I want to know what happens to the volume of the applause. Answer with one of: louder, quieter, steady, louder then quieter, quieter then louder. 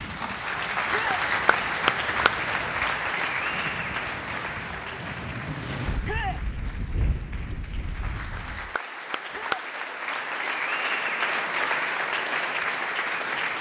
quieter then louder.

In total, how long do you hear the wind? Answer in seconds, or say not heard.
9 s.